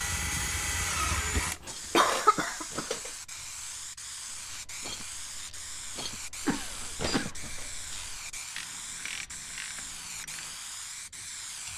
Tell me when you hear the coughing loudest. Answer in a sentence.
The volume of the coughing peaks at 2 seconds.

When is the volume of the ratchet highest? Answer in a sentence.
The loudest moment of the ratchet is at 7 seconds.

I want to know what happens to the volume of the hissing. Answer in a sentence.
The loudness of the hissing stays about the same.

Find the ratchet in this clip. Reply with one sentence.
You can hear the ratchet from 1.6 to 10.6 s.